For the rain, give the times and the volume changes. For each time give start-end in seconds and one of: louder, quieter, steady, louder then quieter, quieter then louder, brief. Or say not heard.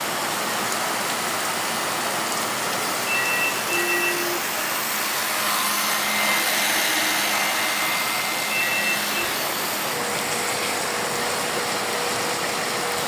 0.0-13.0 quieter then louder.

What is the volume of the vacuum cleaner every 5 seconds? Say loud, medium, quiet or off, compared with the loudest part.
medium, loud, medium.